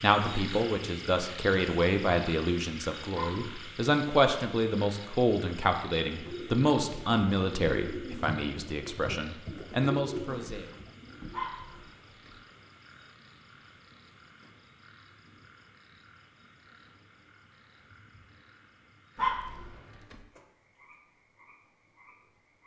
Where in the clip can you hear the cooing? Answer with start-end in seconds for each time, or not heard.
6.0-11.4.